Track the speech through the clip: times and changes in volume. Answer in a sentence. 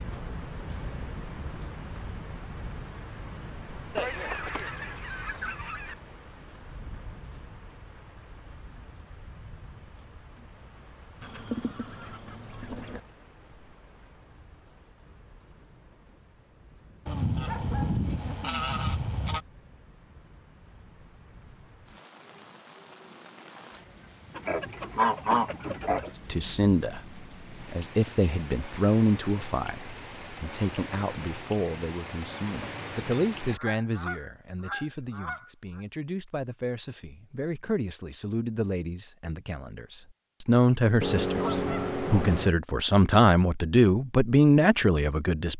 You can hear the speech briefly from 26.3 to 27.0 s; and from 27.7 to 45.5 s, getting quieter then louder.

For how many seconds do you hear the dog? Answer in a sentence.
You can't hear the dog here.